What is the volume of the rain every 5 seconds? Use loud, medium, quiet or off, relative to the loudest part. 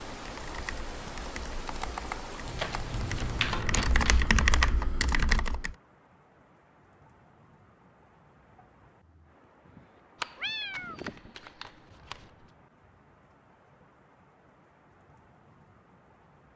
loud, quiet, quiet, quiet.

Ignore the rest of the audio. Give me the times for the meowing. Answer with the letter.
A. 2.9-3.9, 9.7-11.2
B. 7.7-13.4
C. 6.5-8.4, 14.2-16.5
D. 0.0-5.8
A.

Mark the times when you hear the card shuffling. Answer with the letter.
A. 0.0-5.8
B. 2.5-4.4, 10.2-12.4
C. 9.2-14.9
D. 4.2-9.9
B.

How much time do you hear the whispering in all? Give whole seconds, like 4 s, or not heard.
not heard.